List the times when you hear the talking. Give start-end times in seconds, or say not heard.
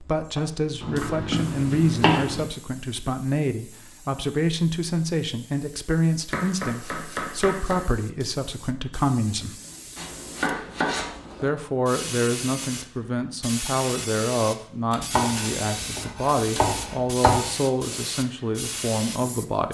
0.0-9.6, 11.4-19.7.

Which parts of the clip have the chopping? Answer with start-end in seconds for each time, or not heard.
0.8-2.5, 6.3-7.8, 9.9-11.5, 14.9-17.4.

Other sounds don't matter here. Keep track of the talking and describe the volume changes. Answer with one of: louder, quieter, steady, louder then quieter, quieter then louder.
steady.